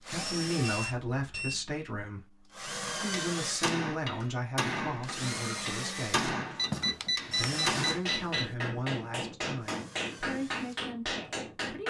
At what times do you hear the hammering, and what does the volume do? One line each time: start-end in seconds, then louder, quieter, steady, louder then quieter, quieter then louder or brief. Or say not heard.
2.9-11.8 steady.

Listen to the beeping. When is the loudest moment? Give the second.
7 s.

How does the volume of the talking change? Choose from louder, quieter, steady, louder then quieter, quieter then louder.
quieter.